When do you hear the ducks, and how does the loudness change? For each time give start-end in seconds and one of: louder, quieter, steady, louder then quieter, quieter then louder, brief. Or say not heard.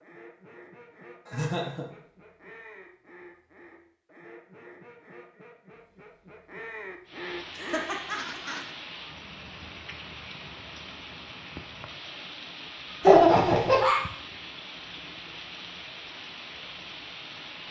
0.0-8.8 louder.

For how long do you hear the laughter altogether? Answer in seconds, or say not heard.
3 s.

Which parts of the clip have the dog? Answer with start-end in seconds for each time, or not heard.
not heard.